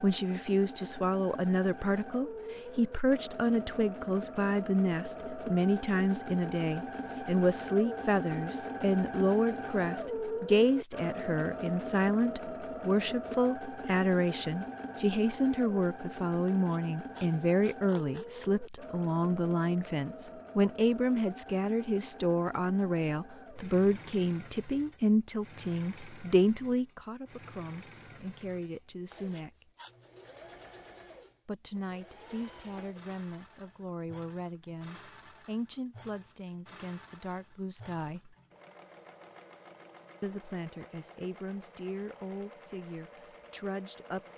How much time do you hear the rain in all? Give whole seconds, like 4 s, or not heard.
not heard.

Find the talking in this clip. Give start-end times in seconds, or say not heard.
0.0-29.6, 31.4-38.4, 40.2-44.3.